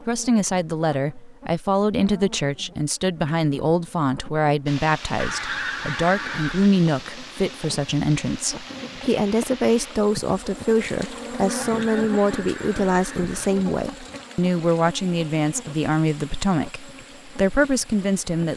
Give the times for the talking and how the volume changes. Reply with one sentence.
You can hear the talking from 0.0 to 18.5 s, at a steady volume.